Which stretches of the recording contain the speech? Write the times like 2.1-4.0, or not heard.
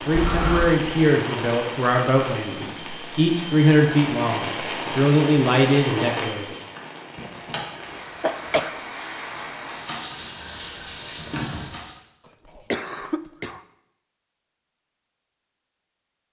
0.0-6.5.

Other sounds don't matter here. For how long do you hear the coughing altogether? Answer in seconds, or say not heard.
3 s.